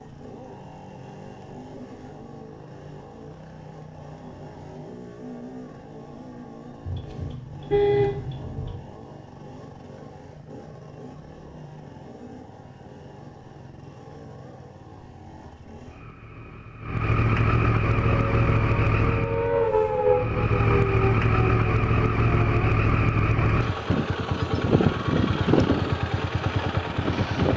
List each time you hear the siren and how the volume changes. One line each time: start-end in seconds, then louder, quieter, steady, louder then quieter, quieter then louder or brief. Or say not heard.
17.9-22.7 louder then quieter.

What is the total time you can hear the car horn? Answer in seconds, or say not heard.
2 s.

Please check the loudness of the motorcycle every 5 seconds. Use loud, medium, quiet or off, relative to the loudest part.
quiet, quiet, quiet, loud, loud, loud.